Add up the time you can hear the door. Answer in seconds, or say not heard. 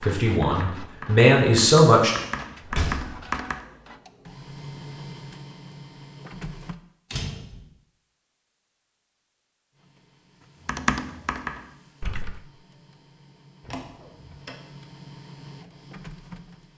2 s.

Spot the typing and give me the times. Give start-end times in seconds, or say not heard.
0.0-3.6, 10.7-12.4.